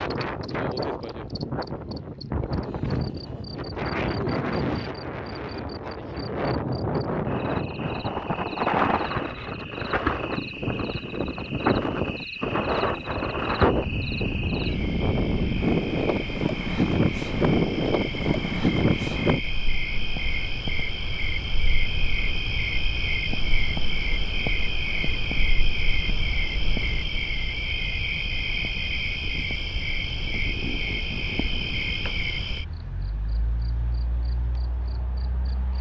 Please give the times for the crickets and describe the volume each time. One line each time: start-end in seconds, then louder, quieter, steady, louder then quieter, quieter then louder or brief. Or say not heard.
0.0-35.7 louder.